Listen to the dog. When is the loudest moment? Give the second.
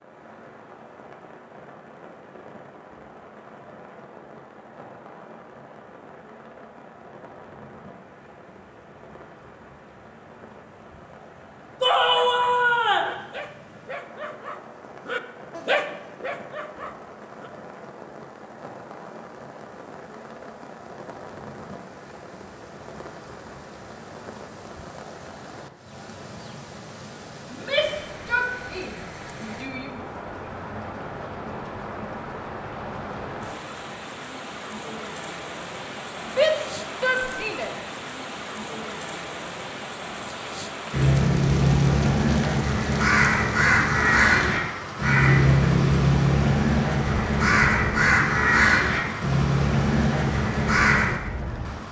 16 s.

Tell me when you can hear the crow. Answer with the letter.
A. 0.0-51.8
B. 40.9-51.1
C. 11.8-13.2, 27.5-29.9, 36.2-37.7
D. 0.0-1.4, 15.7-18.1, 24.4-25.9
B.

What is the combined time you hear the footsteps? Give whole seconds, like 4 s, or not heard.
not heard.